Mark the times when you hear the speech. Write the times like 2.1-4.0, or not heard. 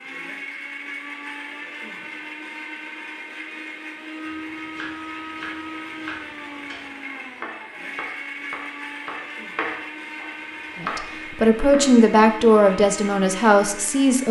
10.8-14.2.